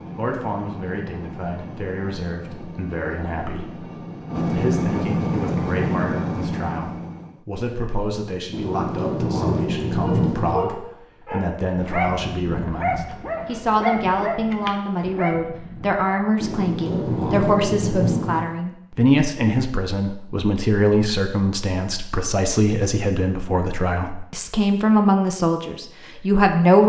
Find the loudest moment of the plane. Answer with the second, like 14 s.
5 s.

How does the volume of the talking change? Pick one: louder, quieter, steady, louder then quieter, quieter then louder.
louder.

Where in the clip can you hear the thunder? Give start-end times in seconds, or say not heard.
8.5-10.6, 16.4-18.4.